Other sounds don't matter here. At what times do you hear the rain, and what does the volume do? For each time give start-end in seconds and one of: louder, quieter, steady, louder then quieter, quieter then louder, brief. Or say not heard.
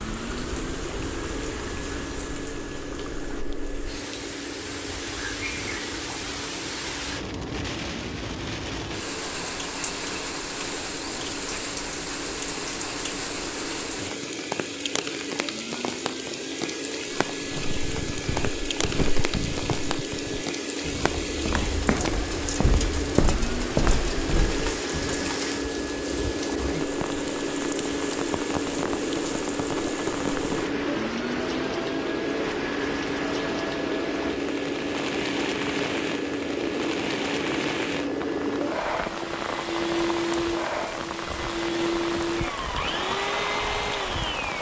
0.0-44.5 steady.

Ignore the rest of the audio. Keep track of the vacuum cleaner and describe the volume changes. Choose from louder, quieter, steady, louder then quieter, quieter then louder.
louder.